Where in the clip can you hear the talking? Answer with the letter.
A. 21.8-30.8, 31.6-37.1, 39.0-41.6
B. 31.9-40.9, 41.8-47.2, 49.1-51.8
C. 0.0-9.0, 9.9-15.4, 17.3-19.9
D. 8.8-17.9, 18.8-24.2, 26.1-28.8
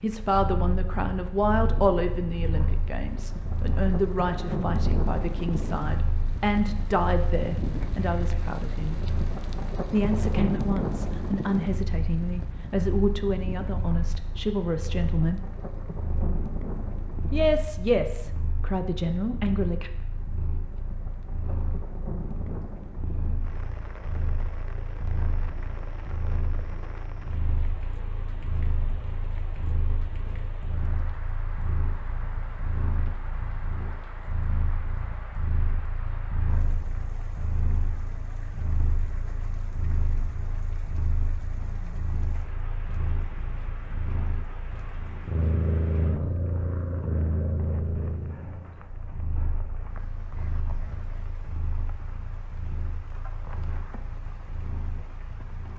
C.